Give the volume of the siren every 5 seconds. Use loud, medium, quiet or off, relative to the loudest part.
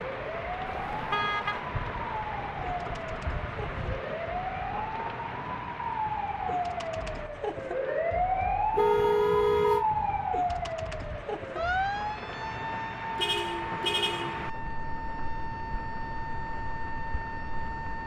medium, loud, loud, medium.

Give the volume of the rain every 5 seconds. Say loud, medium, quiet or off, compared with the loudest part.
loud, medium, loud, medium.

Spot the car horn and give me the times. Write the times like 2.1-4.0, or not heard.
0.7-1.6, 8.7-9.8, 13.2-14.5.